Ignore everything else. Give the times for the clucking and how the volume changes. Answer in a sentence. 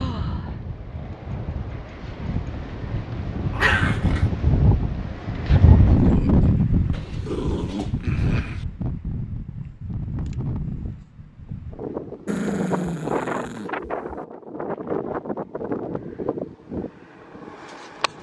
The clucking can't be heard in this clip.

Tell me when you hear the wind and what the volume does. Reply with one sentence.
You can hear the wind from 0.0 to 18.1 s, getting louder then quieter.